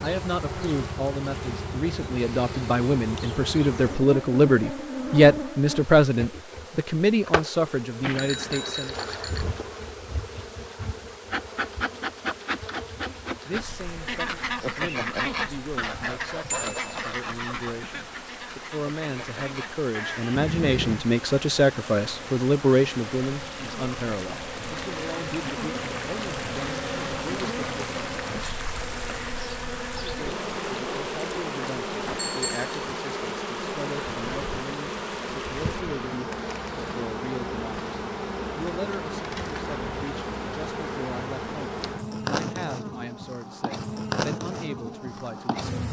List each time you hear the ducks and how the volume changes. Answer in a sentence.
The ducks can be heard from 14.1 to 21.1 s, getting quieter then louder.